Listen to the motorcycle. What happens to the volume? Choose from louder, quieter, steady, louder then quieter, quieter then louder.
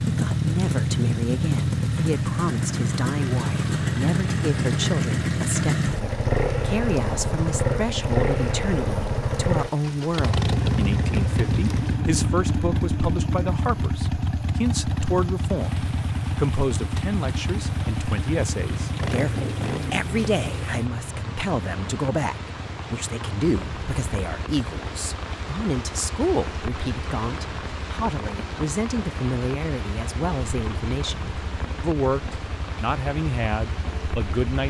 quieter.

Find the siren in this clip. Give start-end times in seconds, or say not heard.
not heard.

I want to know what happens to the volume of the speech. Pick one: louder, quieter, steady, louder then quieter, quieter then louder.
steady.